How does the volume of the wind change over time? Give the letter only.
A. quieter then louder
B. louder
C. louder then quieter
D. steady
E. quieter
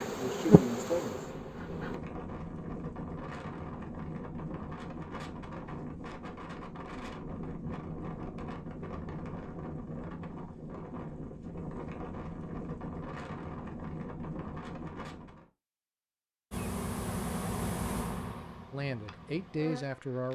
D.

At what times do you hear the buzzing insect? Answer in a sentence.
The buzzing insect can be heard from 0.0 to 2.0 s and from 16.5 to 20.3 s.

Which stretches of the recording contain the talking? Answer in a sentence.
You can hear the talking from 18.7 to 20.3 s.